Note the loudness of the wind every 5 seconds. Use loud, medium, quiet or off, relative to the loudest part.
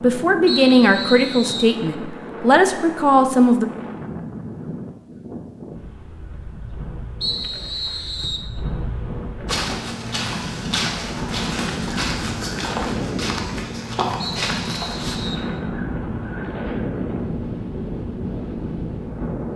medium, medium, loud, loud.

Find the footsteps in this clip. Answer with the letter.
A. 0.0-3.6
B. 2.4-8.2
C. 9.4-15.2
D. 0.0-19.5
C.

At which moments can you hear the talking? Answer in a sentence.
The talking can be heard from 0.0 to 3.6 s.